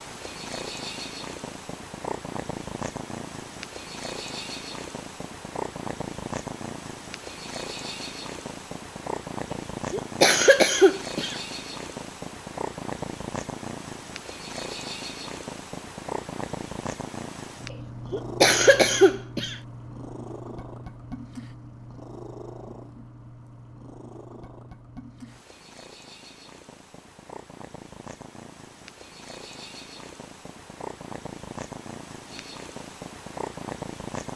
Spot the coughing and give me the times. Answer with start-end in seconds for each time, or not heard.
9.9-11.3, 18.1-19.6.